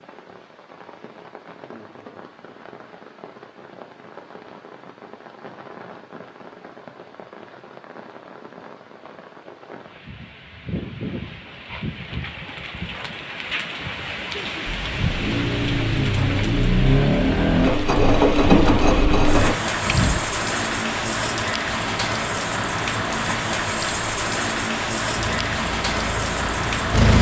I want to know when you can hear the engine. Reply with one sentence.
You can hear the engine from 14.7 to 20.2 s and from 25.1 to 27.1 s.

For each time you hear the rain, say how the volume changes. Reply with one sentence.
You can hear the rain from 0.0 to 27.1 s, getting louder.